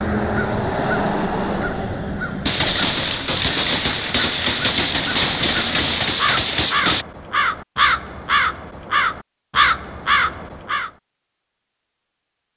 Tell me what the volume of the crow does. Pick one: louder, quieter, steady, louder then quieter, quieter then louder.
quieter then louder.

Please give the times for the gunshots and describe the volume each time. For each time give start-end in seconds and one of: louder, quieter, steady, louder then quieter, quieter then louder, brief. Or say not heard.
2.5-7.0 steady.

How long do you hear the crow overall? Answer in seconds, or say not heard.
11 s.